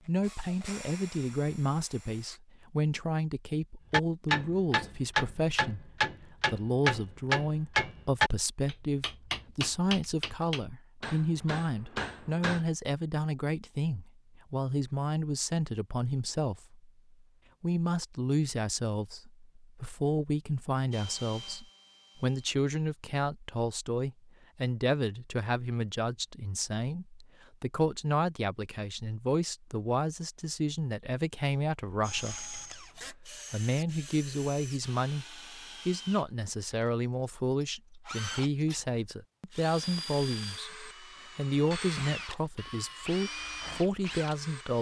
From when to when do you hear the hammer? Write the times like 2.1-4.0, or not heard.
3.9-12.7.